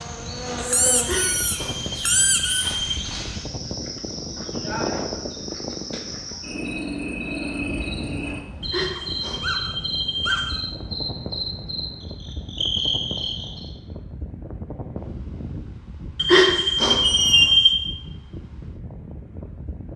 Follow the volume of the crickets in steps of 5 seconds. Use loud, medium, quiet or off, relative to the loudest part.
loud, loud, loud, off.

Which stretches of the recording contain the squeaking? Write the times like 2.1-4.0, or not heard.
0.6-2.7, 8.9-10.6, 17.0-17.6.